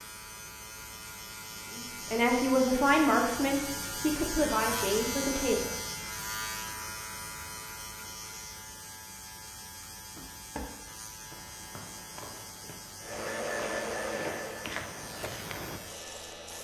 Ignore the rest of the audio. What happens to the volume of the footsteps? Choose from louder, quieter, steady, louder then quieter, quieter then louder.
quieter then louder.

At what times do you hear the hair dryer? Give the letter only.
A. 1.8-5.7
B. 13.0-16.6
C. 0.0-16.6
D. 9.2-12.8
B.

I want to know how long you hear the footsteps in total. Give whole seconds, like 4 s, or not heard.
6 s.